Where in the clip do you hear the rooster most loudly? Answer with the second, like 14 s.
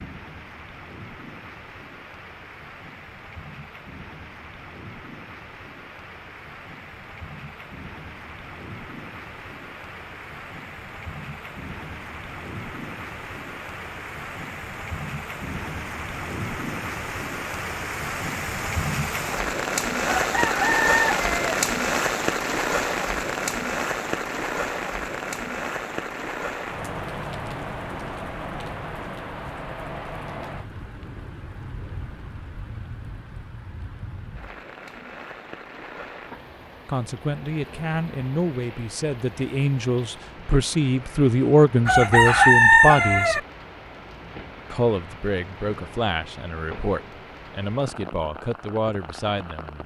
43 s.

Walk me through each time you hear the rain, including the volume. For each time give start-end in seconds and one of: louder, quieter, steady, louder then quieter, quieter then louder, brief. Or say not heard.
0.0-49.8 louder then quieter.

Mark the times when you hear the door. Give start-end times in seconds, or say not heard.
not heard.